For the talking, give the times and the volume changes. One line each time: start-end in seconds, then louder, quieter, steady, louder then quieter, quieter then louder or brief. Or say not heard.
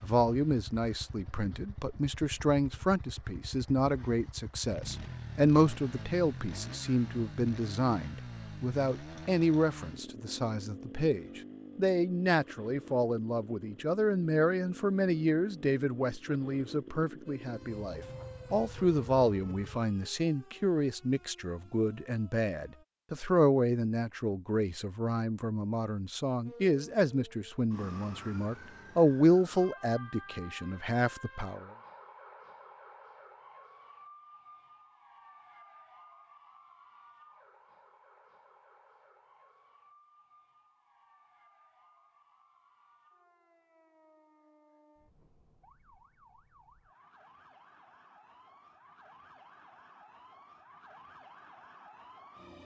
0.0-31.6 steady.